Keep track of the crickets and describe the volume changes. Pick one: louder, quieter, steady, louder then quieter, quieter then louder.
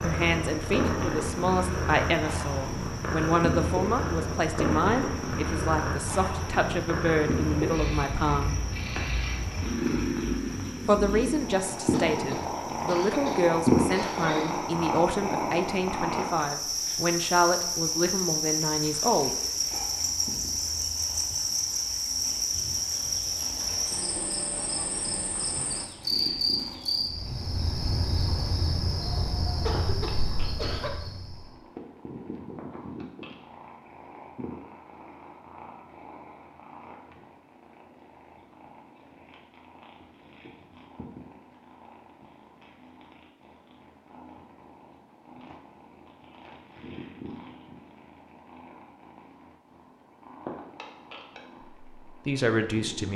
louder.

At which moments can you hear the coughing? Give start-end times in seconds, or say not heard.
11.9-14.6, 29.6-30.9.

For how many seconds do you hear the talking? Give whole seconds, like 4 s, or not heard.
18 s.